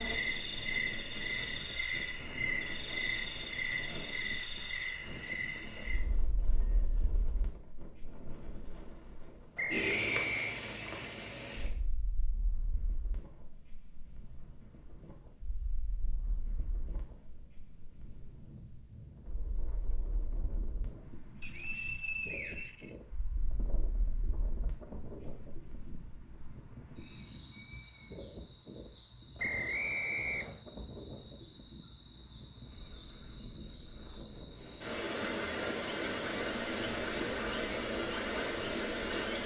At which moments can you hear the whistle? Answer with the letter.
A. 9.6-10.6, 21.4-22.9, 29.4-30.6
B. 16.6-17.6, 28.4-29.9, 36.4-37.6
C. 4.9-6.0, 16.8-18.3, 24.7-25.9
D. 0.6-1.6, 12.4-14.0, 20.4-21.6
A.